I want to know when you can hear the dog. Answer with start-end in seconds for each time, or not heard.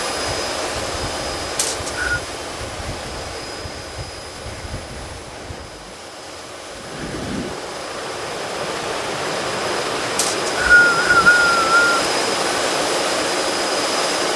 not heard.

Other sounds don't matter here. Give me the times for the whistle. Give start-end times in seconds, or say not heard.
1.6-2.2, 10.2-11.9.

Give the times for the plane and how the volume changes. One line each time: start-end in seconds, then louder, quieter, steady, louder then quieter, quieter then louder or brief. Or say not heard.
0.0-14.3 quieter then louder.